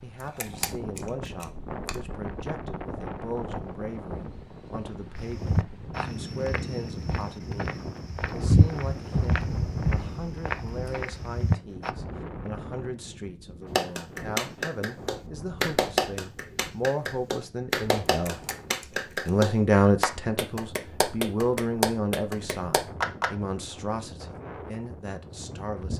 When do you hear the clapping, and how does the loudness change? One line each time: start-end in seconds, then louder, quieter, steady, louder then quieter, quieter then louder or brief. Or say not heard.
13.8-23.3 steady.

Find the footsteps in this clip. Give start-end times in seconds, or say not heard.
5.2-11.9.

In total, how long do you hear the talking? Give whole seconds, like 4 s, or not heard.
25 s.